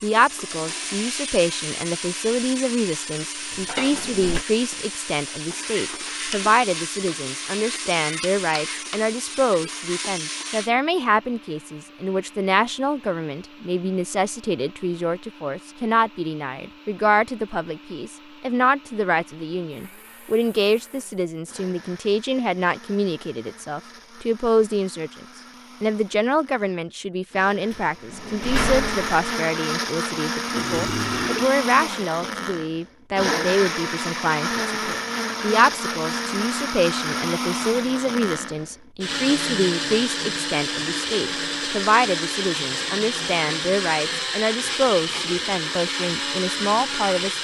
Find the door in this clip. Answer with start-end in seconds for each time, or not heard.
3.5-4.5, 27.7-29.1.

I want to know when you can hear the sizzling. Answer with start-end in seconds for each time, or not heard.
0.0-10.7.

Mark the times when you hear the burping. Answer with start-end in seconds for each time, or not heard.
30.6-31.5.